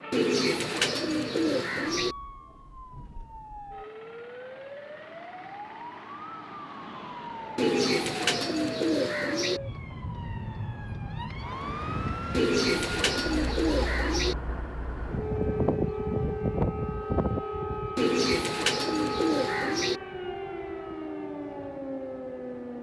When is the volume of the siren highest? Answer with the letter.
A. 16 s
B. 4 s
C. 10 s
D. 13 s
A.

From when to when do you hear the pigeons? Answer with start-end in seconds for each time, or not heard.
0.1-2.1, 7.5-9.6, 12.3-14.3, 17.9-20.0.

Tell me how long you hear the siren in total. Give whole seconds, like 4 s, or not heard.
23 s.